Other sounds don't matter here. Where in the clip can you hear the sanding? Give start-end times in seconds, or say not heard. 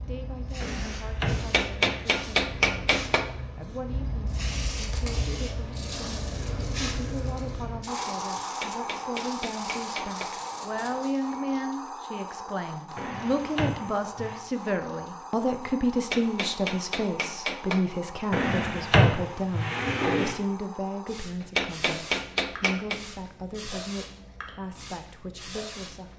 4.3-11.2.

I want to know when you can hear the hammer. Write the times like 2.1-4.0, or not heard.
1.4-3.3, 8.4-10.3, 15.9-17.9, 21.4-23.0.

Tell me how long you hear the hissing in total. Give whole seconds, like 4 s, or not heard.
26 s.